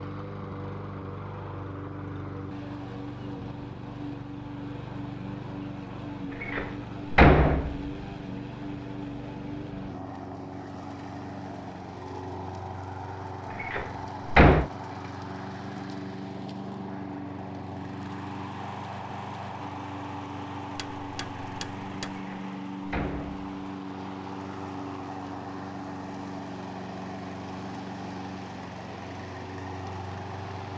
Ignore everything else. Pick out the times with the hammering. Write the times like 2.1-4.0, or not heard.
20.8-22.2.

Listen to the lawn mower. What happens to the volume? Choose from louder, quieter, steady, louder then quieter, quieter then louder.
steady.